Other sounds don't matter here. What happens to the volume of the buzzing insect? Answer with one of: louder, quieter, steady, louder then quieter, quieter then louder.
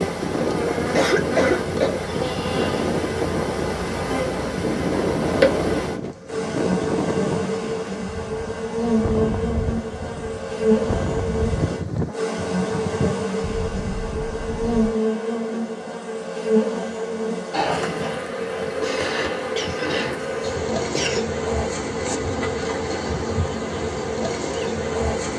steady.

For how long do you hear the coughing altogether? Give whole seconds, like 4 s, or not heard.
3 s.